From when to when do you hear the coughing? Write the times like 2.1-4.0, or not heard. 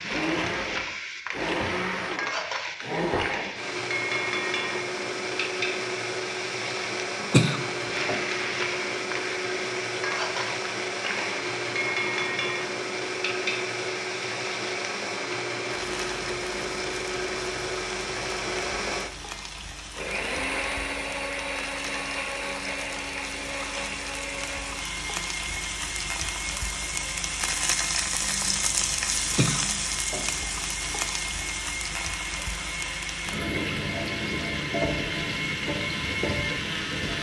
7.3-8.2, 29.4-30.4.